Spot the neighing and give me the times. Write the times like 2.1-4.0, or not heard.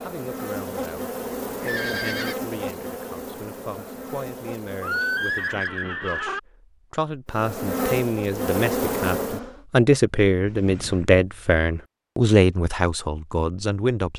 1.6-2.4, 4.8-6.4, 10.4-11.1.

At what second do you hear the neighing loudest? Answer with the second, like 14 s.
5 s.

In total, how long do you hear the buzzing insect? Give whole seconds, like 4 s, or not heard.
8 s.